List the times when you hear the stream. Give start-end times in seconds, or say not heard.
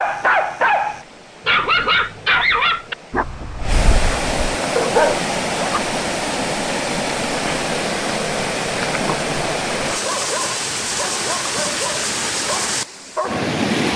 0.0-13.9.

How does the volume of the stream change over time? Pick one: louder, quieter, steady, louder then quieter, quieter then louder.
louder.